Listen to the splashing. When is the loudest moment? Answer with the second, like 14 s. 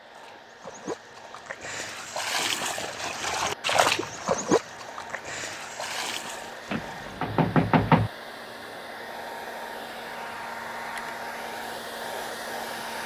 4 s.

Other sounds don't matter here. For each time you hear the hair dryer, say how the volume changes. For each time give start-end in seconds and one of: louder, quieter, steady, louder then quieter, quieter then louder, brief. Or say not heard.
0.0-13.0 louder.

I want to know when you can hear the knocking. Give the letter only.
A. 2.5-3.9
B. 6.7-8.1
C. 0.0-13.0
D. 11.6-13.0
B.